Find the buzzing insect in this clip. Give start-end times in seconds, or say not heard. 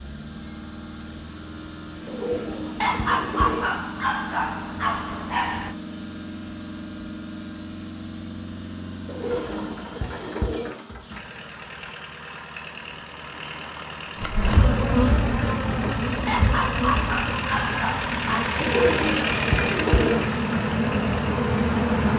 14.2-22.1.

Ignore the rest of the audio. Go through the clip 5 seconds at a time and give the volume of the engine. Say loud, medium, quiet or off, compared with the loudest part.
medium, medium, medium, loud, loud.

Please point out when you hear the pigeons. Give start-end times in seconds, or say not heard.
2.0-3.8, 9.1-10.8, 18.6-20.2.